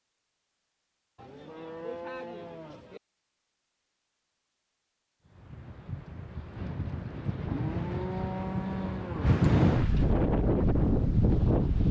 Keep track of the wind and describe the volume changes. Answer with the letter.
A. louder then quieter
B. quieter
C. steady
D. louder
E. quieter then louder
D.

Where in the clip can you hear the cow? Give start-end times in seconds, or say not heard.
1.1-3.0, 7.5-9.4.